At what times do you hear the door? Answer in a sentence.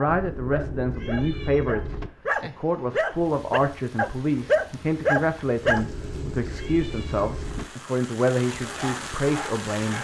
The door can't be heard in this clip.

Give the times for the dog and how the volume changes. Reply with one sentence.
The dog can be heard from 0.0 to 5.8 s, getting louder; and briefly from 8.5 to 9.9 s.